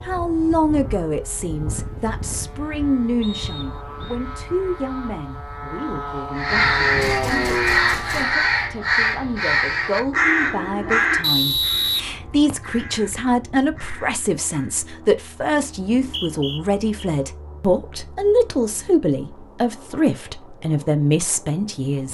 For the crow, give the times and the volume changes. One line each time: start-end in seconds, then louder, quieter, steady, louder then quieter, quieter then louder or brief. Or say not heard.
6.3-14.8 quieter.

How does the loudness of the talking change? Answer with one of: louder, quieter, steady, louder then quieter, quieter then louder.
quieter then louder.